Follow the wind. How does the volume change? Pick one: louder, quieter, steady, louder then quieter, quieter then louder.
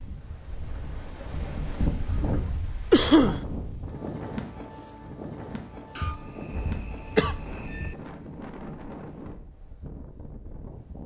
quieter.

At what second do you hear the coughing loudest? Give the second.
3 s.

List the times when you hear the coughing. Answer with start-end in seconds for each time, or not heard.
2.9-3.4, 6.0-8.0.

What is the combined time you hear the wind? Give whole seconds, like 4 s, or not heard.
11 s.